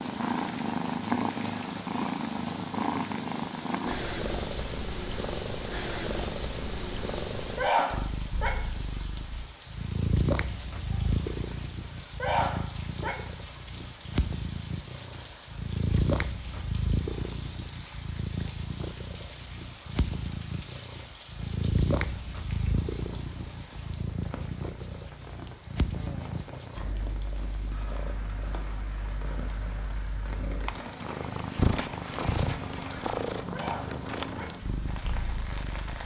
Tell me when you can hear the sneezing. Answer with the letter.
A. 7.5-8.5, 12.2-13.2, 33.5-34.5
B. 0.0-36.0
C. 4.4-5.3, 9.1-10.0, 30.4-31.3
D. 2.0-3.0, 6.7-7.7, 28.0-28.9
A.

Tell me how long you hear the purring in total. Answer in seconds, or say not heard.
36 s.